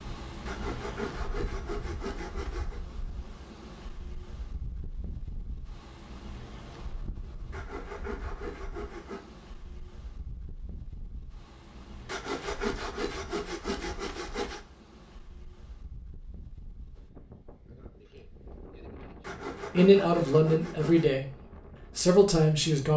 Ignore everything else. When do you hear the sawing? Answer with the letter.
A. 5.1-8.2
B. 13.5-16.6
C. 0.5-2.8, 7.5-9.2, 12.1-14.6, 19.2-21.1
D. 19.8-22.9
C.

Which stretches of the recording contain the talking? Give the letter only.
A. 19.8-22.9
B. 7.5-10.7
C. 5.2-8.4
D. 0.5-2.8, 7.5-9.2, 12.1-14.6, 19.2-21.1
A.